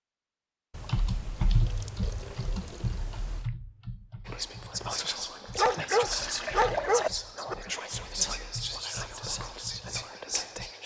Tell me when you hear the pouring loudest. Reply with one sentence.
The loudest moment of the pouring is at 7 seconds.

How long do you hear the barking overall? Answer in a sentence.
You can hear the barking for 2 seconds altogether.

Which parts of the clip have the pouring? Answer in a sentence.
The pouring can be heard from 0.7 to 3.5 s and from 5.5 to 7.1 s.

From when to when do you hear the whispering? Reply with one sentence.
The whispering can be heard from 4.2 to 10.8 s.